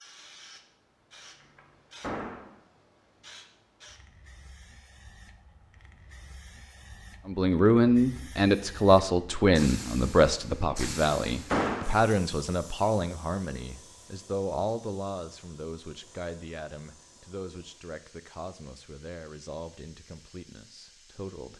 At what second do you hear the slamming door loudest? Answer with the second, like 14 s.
12 s.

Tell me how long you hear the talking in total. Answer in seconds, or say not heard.
14 s.